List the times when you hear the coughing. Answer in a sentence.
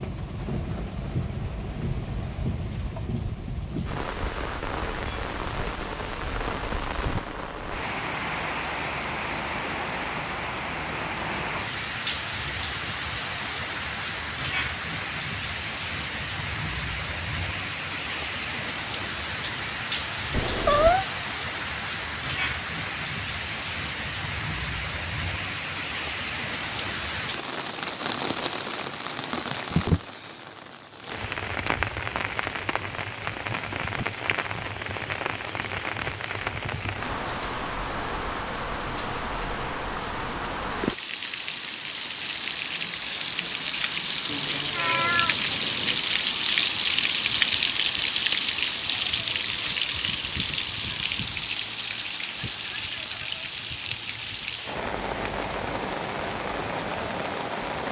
The coughing can't be heard in this clip.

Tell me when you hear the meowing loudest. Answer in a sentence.
The volume of the meowing peaks at 21 seconds.